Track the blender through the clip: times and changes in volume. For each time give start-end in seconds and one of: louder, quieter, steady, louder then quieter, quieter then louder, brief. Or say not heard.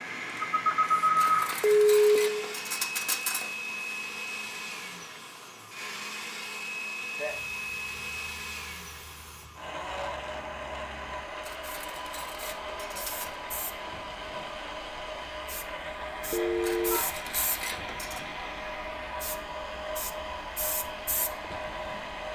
0.0-22.2 steady.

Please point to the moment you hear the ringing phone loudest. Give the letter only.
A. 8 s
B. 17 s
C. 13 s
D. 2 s
D.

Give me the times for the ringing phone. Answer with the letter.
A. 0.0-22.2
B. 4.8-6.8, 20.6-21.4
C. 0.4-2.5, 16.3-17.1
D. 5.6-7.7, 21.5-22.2
C.